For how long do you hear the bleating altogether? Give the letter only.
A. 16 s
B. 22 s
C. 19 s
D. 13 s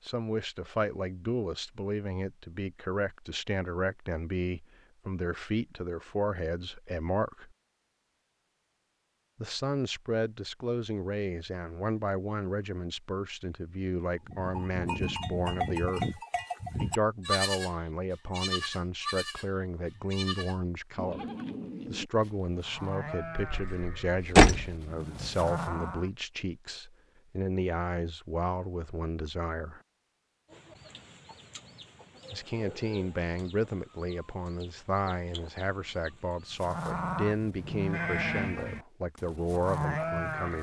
A.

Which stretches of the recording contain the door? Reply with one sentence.
You can hear the door from 23.5 to 24.6 s.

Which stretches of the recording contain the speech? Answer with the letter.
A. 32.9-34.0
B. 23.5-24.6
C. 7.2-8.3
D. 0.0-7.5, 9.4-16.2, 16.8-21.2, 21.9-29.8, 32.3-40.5
D.